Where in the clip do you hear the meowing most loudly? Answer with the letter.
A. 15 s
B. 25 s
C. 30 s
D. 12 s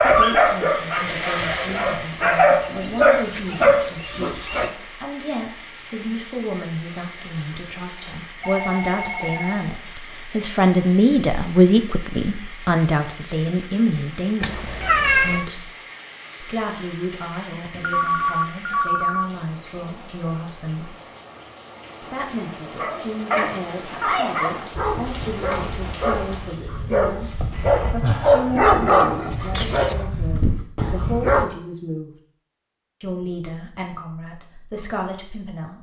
A.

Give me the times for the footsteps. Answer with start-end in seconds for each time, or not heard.
not heard.